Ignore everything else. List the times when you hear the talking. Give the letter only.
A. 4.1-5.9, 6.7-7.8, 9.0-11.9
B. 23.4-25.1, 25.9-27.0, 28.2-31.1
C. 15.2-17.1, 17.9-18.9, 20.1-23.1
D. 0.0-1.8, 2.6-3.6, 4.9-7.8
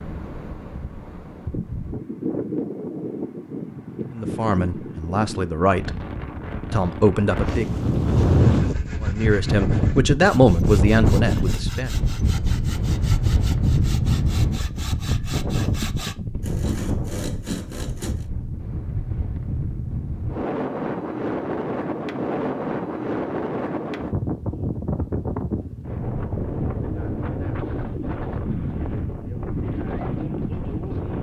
A.